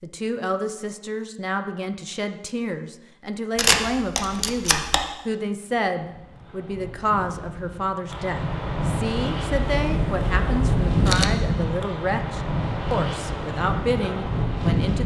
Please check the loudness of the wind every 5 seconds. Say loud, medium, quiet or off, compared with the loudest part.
off, medium, loud.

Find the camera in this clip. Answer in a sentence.
You can hear the camera from 3.5 to 5.0 s and from 9.4 to 11.4 s.